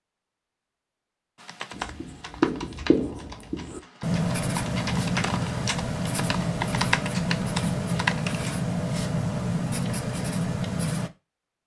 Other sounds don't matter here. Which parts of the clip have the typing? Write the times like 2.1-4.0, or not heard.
1.4-8.6.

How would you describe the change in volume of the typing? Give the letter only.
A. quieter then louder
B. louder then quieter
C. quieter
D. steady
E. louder
A.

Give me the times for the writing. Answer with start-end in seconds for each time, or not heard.
1.7-11.1.